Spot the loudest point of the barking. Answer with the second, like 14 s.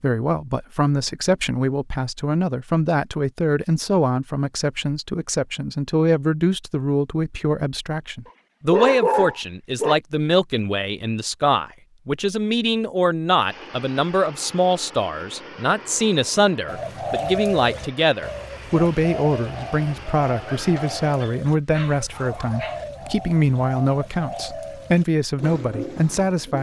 9 s.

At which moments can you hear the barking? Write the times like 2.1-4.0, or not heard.
8.2-9.9, 20.6-22.8.